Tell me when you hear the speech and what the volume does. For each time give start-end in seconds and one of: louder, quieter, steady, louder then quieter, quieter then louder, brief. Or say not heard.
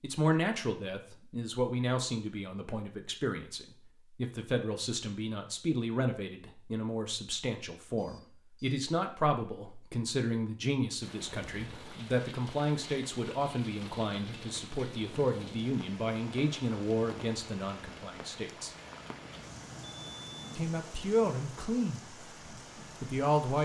0.0-18.7 steady
20.6-22.1 brief
23.0-23.6 brief.